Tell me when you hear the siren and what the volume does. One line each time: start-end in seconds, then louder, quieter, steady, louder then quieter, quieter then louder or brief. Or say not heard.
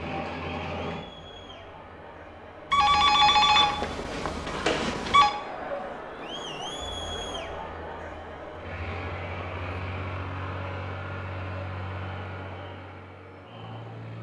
not heard.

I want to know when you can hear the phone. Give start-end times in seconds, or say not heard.
2.7-5.3.